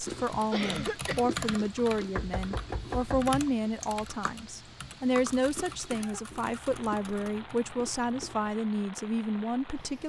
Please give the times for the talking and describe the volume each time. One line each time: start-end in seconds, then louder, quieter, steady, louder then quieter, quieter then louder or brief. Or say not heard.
0.0-10.0 steady.